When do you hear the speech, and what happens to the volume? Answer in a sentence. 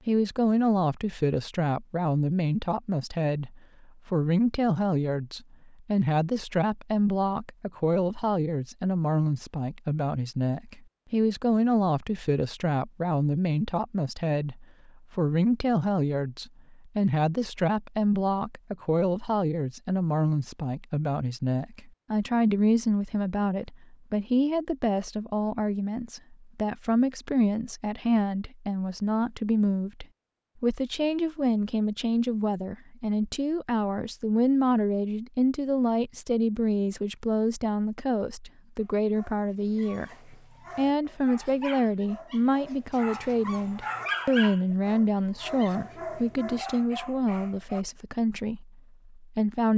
You can hear the speech from 0.1 to 49.7 s, at a steady volume.